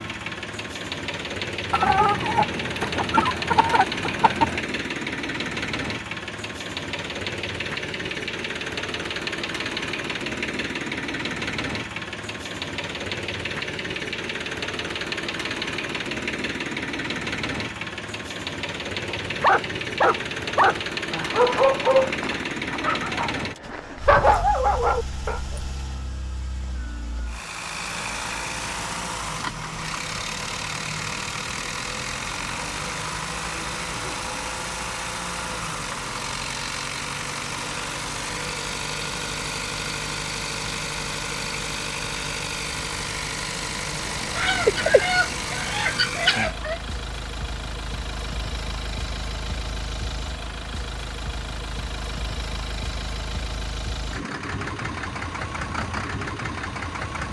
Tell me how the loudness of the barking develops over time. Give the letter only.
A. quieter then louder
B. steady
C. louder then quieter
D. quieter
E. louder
A.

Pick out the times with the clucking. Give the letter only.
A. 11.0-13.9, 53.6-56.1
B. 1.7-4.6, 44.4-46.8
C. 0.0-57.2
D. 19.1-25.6
B.